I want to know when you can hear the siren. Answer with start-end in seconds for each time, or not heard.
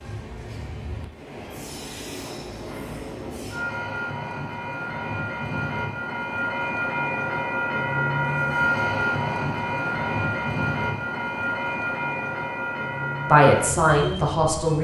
not heard.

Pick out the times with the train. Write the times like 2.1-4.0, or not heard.
0.0-14.7.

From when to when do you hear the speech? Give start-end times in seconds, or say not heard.
13.2-14.7.